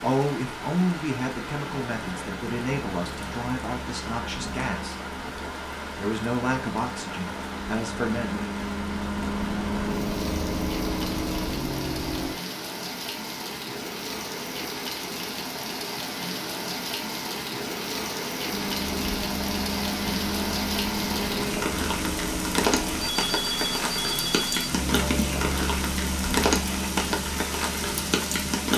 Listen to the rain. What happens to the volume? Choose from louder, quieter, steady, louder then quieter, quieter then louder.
louder.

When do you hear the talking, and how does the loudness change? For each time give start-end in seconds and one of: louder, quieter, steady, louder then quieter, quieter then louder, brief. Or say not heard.
0.0-5.0 quieter
6.0-8.5 brief.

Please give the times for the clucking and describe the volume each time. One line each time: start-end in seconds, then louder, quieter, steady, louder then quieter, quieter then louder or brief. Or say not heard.
not heard.